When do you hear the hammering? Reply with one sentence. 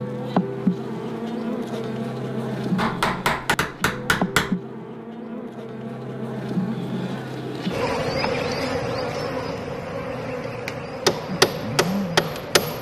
You can hear the hammering from 2.8 to 4.5 s and from 11.1 to 12.7 s.